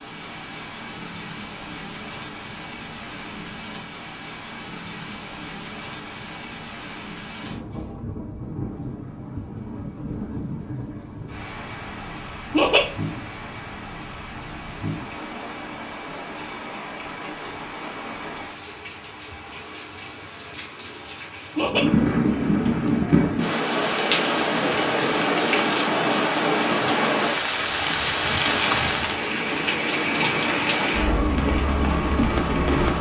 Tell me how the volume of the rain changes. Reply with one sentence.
The volume of the rain goes up.